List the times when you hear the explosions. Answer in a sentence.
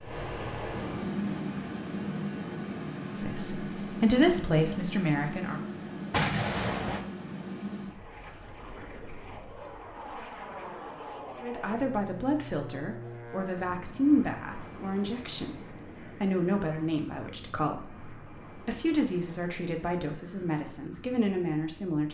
You can hear the explosions from 6.1 to 7.0 s.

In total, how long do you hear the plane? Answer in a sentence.
You can hear the plane for 22 seconds altogether.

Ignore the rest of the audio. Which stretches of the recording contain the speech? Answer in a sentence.
You can hear the speech from 3.2 to 5.6 s and from 11.4 to 22.0 s.